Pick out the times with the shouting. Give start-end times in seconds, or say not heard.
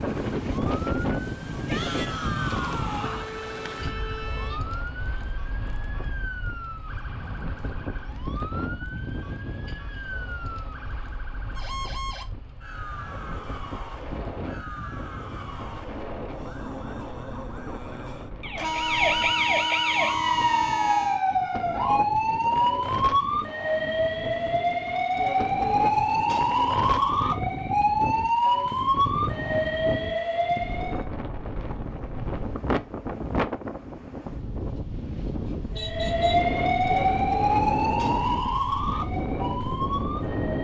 1.6-3.3.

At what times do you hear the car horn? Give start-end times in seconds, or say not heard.
3.0-4.6, 18.6-21.2, 35.5-36.5.